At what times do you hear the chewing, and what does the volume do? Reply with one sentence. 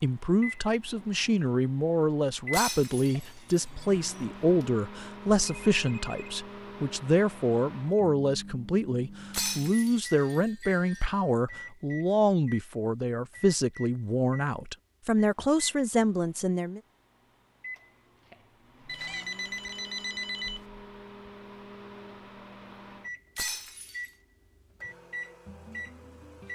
The chewing can't be heard in this clip.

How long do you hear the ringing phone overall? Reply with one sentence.
The ringing phone can be heard for 4 seconds in total.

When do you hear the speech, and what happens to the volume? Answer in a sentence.
The speech can be heard from 0.0 to 16.8 s, at a steady volume.